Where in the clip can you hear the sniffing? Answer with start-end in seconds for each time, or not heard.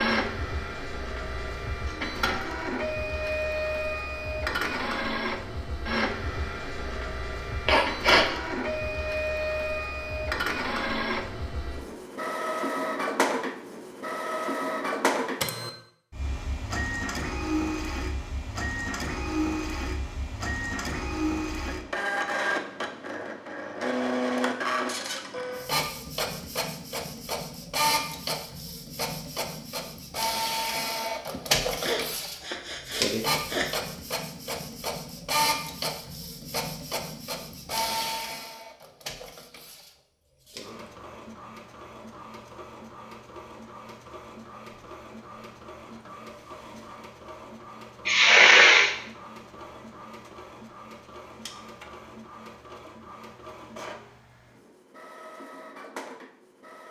7.7-8.2, 31.3-33.7, 48.0-49.0.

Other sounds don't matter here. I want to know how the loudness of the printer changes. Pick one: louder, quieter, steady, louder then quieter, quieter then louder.
quieter.